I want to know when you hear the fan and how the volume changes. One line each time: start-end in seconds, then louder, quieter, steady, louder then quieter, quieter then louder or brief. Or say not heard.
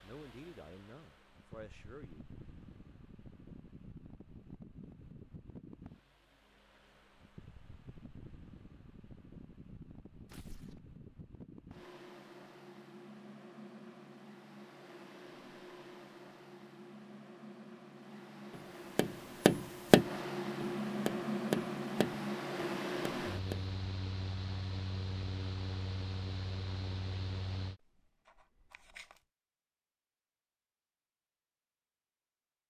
0.0-27.8 louder.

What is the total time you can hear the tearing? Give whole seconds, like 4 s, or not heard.
2 s.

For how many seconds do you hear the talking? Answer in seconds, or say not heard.
2 s.